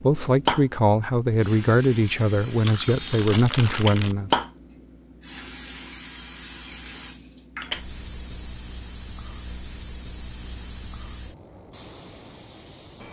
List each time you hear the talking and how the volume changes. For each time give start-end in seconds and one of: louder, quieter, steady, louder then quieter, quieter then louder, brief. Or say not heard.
0.0-4.4 steady.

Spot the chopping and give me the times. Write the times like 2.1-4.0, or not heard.
not heard.